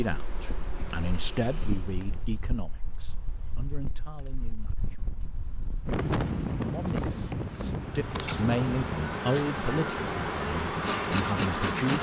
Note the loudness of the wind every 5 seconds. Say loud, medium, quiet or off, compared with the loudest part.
quiet, loud, medium.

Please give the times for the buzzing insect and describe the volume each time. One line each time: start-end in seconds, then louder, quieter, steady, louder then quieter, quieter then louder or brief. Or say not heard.
0.0-2.5 brief
7.8-11.9 louder.